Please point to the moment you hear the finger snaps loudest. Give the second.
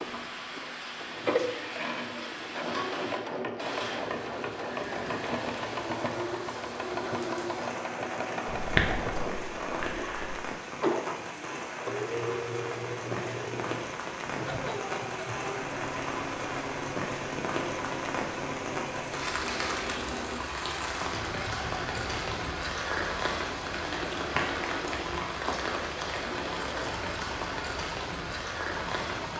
9 s.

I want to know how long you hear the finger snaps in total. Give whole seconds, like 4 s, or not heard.
2 s.